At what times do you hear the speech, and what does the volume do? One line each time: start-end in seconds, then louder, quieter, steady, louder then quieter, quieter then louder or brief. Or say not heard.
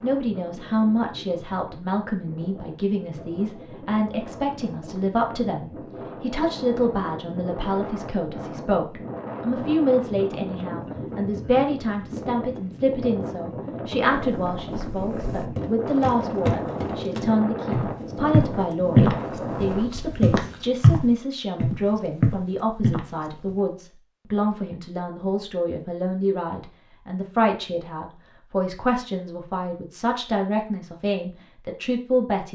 0.0-32.4 steady.